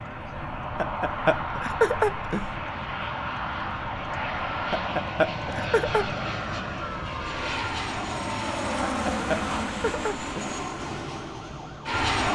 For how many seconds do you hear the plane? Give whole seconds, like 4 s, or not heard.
12 s.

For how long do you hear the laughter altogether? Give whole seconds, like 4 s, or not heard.
5 s.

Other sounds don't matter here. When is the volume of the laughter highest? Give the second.
2 s.